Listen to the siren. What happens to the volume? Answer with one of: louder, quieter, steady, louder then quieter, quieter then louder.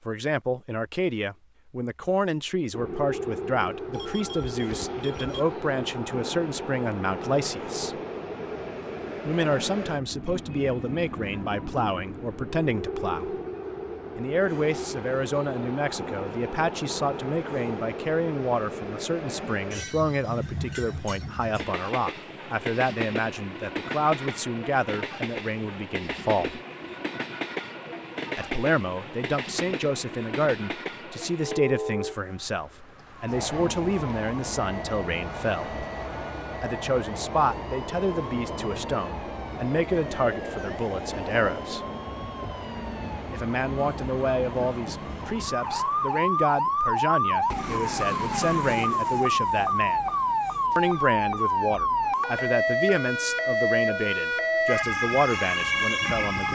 louder.